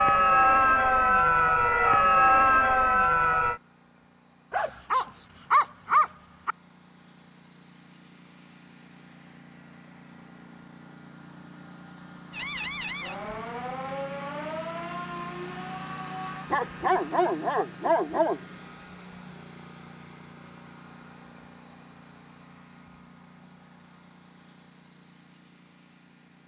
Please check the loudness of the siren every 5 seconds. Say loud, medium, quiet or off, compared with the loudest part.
loud, off, quiet, quiet, off, off.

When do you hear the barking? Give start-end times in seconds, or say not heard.
4.5-6.5, 16.5-18.4.